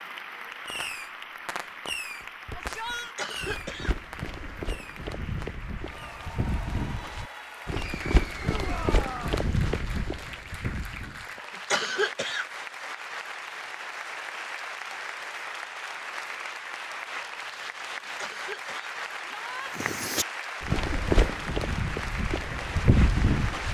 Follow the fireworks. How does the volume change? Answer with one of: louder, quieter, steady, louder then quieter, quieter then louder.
louder then quieter.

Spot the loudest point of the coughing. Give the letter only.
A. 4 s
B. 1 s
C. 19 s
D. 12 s
D.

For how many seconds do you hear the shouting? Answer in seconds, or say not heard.
2 s.